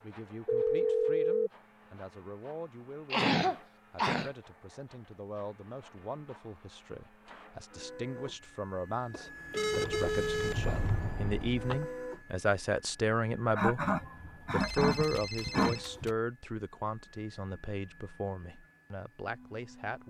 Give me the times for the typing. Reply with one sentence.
The typing can be heard from 9.8 to 11.8 s.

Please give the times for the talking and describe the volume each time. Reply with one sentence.
You can hear the talking from 0.0 to 20.0 s, getting louder then quieter.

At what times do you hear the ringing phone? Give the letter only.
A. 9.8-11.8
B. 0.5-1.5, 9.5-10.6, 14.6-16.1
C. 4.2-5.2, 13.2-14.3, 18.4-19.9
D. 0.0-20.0
B.